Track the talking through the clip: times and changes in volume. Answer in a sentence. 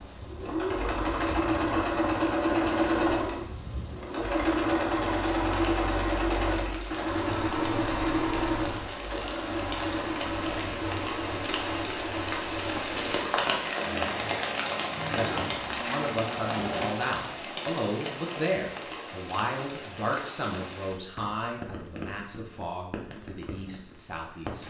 You can hear the talking from 15.2 to 24.6 s, getting quieter.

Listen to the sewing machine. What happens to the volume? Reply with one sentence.
The loudness of the sewing machine goes down.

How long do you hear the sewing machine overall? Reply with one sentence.
You can hear the sewing machine for 17 seconds altogether.